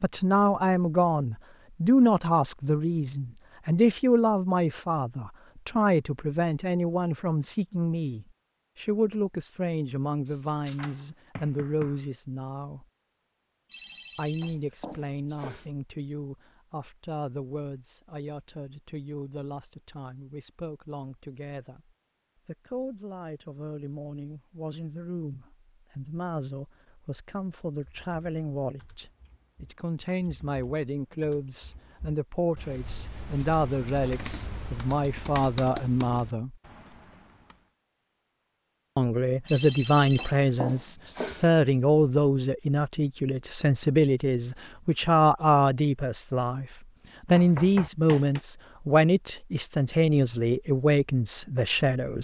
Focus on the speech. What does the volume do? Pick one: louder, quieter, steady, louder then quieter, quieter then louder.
quieter then louder.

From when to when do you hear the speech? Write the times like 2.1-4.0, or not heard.
0.0-12.8, 14.2-36.5, 39.0-52.1.